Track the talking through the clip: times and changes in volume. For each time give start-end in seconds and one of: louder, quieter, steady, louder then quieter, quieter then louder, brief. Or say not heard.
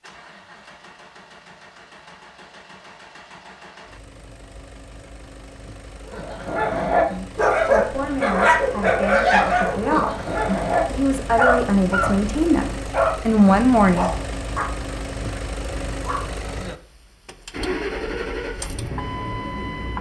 7.1-14.2 louder.